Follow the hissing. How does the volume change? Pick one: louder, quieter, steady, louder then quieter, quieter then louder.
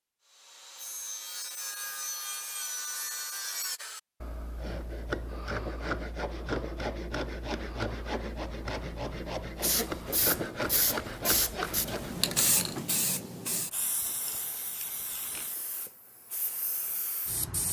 quieter.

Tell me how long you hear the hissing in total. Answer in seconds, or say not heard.
8 s.